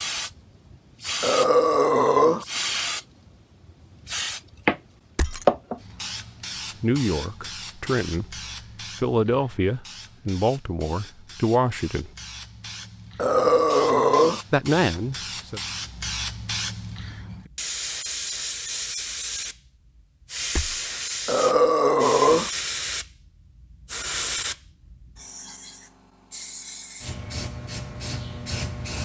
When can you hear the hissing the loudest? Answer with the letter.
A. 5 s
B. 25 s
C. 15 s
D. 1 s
A.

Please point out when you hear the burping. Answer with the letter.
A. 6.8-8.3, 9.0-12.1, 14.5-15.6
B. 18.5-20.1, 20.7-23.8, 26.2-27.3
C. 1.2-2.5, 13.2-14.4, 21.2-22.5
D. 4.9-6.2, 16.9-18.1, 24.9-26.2
C.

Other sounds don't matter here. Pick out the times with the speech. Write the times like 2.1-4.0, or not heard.
6.8-8.3, 9.0-12.1, 14.5-15.6.